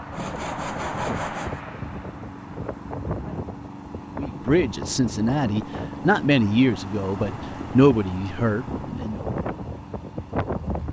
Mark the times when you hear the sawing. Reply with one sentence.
You can hear the sawing from 0.1 to 1.6 s.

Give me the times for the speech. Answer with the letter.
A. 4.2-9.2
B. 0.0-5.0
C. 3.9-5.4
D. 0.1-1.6
A.